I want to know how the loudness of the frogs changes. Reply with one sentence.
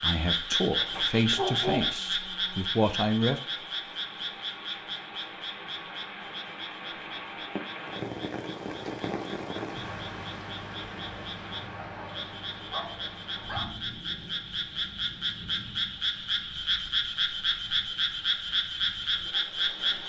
The loudness of the frogs goes down, then up.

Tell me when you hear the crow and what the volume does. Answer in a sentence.
The crow can't be heard in this clip.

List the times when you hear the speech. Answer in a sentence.
The speech can be heard from 0.0 to 3.4 s.